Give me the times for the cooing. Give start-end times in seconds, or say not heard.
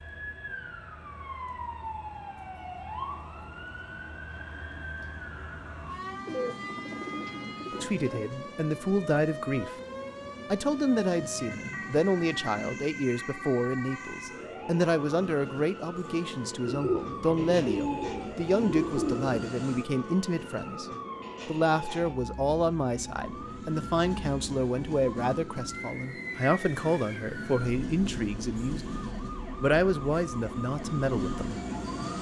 6.2-8.2, 16.6-19.3.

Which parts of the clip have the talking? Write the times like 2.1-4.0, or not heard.
7.8-9.7, 10.5-20.9, 21.4-31.6.